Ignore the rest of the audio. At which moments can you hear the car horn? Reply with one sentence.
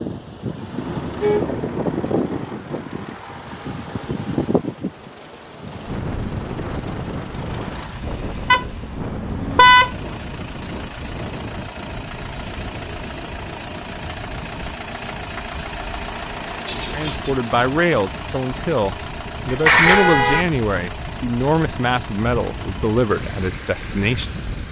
The car horn can be heard from 0.8 to 2.0 s, from 8.5 to 9.9 s and from 19.4 to 20.4 s.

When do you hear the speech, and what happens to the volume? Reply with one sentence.
The speech can be heard from 16.9 to 24.3 s, at a steady volume.